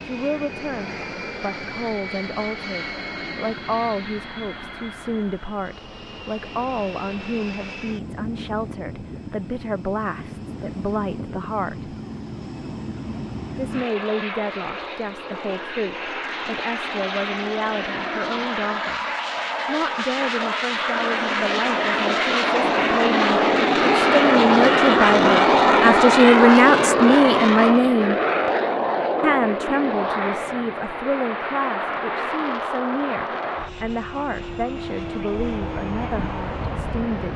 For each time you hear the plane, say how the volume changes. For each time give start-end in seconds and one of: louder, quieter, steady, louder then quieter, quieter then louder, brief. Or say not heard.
0.0-37.3 louder then quieter.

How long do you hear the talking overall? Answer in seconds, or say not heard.
34 s.